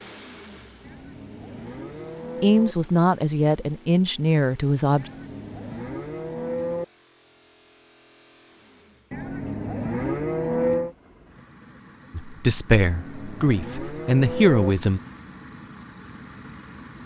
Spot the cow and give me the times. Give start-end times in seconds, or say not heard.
0.8-2.8, 5.0-6.8, 9.1-10.9, 12.8-14.7.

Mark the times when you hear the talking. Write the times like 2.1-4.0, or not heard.
2.4-5.0, 12.2-15.0.